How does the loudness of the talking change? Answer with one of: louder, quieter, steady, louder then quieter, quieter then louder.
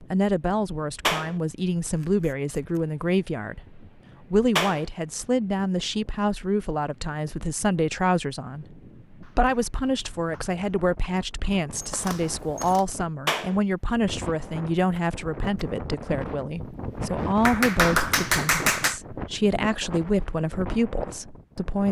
steady.